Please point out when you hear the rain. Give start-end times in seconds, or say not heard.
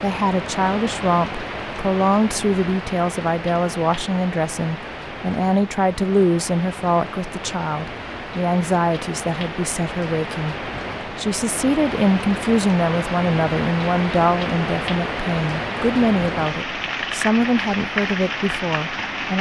0.0-19.3.